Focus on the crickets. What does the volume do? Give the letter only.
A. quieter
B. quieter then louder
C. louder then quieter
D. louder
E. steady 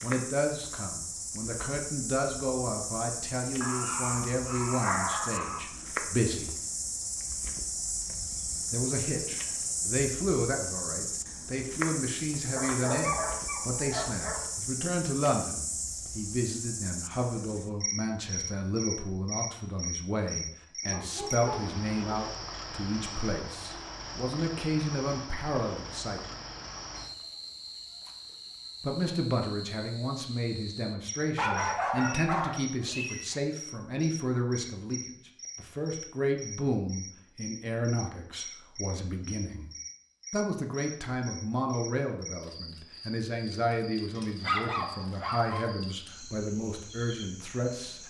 A.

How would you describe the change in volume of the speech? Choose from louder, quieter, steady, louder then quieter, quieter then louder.
steady.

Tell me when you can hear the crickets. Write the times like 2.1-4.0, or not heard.
0.0-48.0.